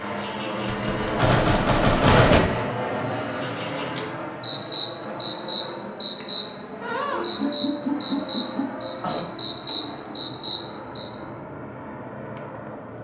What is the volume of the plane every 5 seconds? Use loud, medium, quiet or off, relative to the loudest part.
loud, medium, medium.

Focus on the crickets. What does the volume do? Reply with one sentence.
The loudness of the crickets goes up.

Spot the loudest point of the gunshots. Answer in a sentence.
The loudest moment of the gunshots is at 2 seconds.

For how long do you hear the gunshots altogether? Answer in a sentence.
The gunshots can be heard for 2 seconds in total.